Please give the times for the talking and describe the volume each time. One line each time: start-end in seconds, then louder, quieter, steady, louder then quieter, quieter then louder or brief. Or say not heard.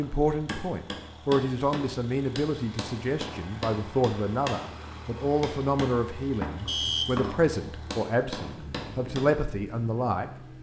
0.0-10.5 steady.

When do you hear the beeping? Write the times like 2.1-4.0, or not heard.
6.7-7.3.